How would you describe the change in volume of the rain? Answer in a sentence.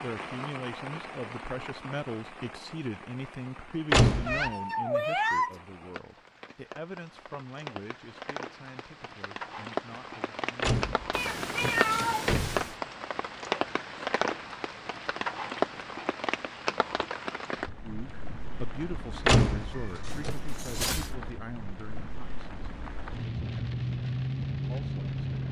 The volume of the rain goes up.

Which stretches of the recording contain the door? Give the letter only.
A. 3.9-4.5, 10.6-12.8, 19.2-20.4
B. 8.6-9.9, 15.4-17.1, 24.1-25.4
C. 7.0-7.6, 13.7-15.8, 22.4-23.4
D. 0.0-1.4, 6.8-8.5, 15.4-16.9
A.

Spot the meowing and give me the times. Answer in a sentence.
You can hear the meowing from 4.2 to 5.6 s, from 11.1 to 12.8 s and from 19.7 to 21.1 s.